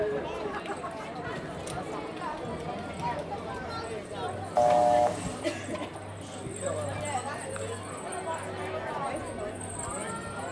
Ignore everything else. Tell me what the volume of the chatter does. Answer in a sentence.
The loudness of the chatter stays about the same.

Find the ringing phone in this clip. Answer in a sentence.
The ringing phone can be heard from 4.5 to 5.4 s.